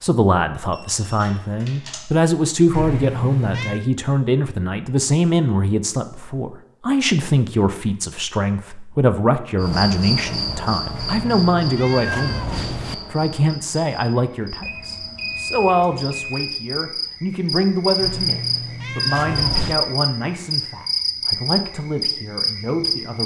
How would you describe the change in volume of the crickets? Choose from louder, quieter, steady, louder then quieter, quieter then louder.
quieter then louder.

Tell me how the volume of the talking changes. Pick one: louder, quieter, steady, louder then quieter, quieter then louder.
quieter.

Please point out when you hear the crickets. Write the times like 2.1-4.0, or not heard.
9.6-23.2.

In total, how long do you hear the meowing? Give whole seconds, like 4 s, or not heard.
5 s.